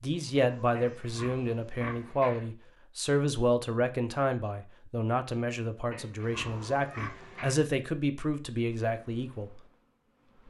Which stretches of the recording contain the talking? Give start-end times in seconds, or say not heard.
0.0-9.6.